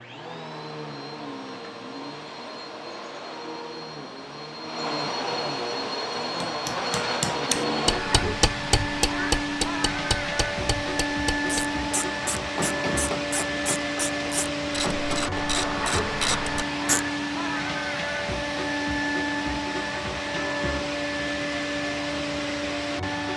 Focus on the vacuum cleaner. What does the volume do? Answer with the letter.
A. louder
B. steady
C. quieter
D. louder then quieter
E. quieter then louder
A.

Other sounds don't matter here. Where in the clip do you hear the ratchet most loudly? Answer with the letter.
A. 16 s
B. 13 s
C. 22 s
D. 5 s
A.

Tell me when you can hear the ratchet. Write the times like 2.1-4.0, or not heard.
11.4-17.1.